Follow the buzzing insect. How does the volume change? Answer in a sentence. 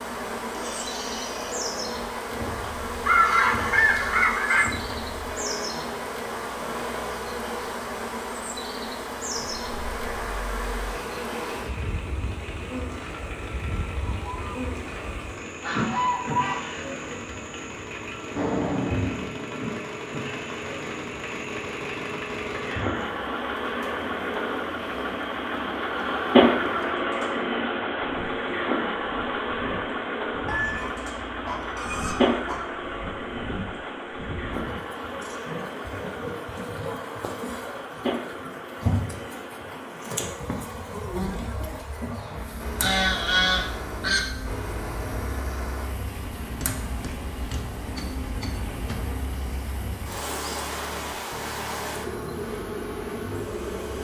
The loudness of the buzzing insect goes down, then up.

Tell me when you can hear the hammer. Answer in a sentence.
You can hear the hammer from 46.4 to 49.1 s.